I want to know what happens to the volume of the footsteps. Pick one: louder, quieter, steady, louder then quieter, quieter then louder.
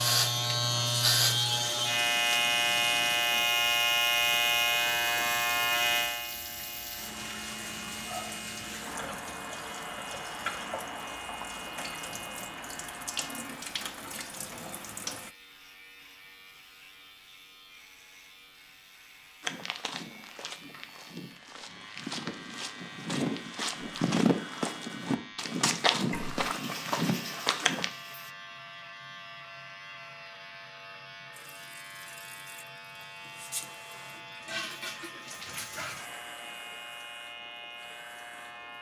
louder.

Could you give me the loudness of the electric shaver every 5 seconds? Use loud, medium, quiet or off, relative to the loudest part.
loud, medium, quiet, quiet, quiet, quiet, quiet, quiet.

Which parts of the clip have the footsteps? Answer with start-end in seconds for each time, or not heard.
19.4-27.9.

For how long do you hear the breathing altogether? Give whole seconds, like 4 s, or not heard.
not heard.